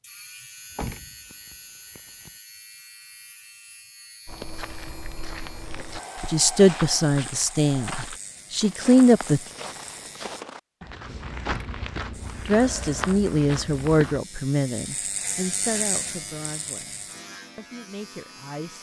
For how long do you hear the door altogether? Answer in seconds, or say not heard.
2 s.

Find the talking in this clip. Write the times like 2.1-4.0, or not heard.
6.2-9.4, 12.4-18.7.